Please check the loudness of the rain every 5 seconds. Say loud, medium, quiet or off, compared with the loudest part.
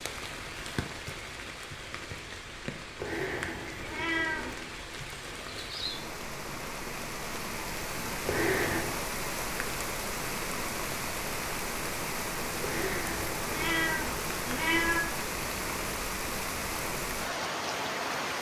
medium, loud, loud, loud.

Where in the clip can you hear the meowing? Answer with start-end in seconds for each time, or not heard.
3.0-4.6, 8.2-9.0, 12.6-15.0.